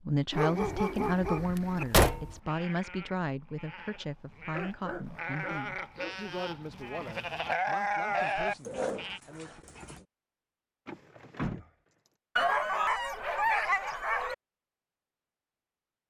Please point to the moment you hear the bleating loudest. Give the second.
8 s.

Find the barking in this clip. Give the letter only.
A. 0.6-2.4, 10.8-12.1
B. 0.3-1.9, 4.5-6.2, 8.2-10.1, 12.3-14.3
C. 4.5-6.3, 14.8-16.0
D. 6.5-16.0
B.